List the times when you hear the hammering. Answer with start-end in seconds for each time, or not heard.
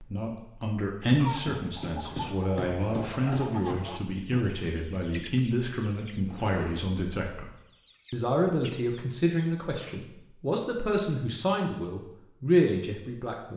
1.2-3.9.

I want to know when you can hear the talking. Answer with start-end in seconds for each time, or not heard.
0.0-7.5, 8.1-13.5.